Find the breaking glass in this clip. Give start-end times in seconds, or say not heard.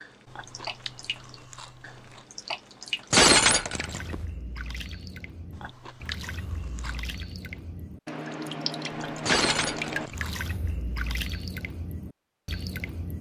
3.1-4.2, 9.2-10.2.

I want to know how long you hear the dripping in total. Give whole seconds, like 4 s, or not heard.
13 s.